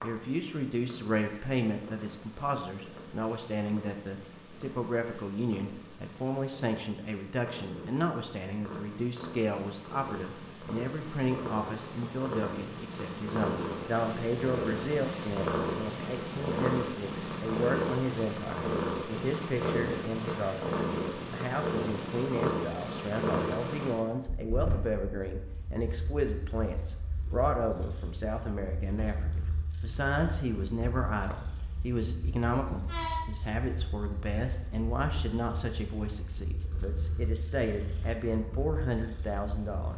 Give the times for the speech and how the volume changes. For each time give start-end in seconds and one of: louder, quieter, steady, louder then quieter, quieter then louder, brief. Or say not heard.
0.0-39.9 steady.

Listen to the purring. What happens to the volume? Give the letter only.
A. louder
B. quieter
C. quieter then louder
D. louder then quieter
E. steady
D.